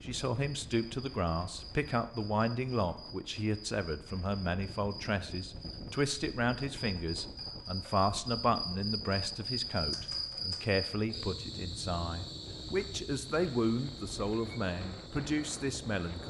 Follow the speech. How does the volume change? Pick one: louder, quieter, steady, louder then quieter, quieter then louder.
steady.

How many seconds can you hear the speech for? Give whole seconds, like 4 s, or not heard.
16 s.